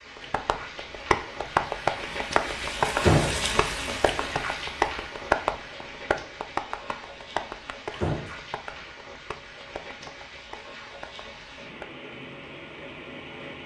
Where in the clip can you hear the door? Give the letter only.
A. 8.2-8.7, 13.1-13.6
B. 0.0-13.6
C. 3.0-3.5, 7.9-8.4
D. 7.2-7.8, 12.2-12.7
C.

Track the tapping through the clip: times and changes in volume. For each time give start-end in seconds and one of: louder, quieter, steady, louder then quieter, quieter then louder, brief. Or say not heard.
0.1-11.9 quieter.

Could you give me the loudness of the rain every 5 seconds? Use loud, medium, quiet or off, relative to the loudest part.
loud, medium, medium.